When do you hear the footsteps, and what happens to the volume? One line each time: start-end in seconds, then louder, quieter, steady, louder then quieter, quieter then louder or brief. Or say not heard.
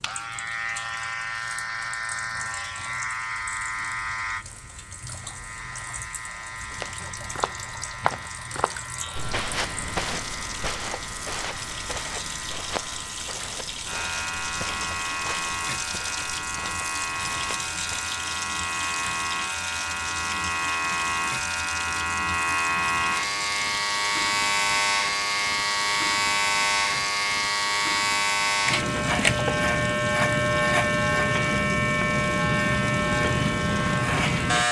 6.7-18.1 quieter.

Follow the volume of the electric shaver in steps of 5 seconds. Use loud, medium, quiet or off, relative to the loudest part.
medium, quiet, quiet, medium, loud, loud, loud.